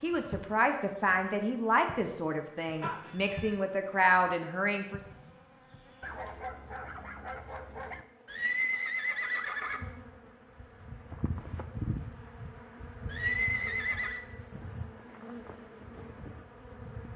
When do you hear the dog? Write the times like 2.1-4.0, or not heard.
6.0-8.1.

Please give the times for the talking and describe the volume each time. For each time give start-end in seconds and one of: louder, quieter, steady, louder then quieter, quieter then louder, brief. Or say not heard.
0.0-5.0 quieter then louder.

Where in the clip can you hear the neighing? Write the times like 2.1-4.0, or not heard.
2.8-3.5, 8.2-9.8, 13.1-14.2.